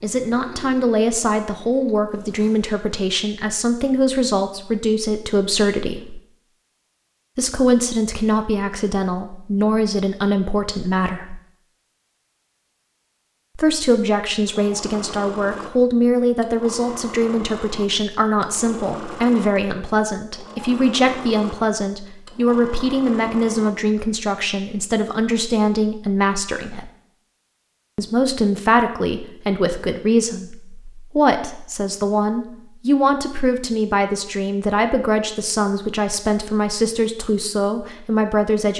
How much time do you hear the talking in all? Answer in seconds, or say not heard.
34 s.